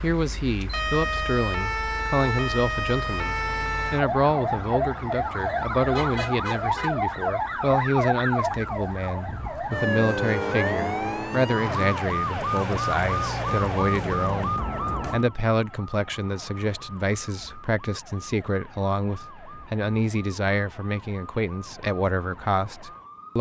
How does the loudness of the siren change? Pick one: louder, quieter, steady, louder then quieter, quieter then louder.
quieter.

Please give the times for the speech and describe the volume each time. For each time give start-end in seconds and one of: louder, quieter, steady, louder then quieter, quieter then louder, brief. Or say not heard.
0.0-23.3 steady.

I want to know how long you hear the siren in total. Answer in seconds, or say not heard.
23 s.